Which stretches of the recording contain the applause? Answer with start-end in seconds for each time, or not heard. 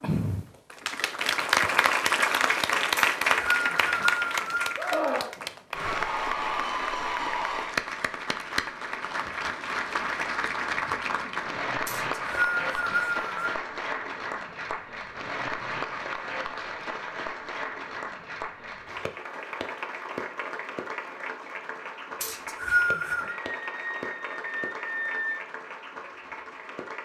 0.0-26.9.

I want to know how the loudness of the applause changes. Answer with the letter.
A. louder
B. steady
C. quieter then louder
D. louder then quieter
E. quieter
E.